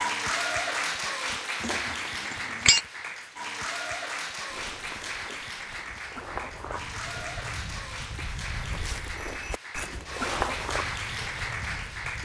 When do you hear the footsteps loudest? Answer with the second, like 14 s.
10 s.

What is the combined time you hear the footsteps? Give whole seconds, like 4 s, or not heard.
8 s.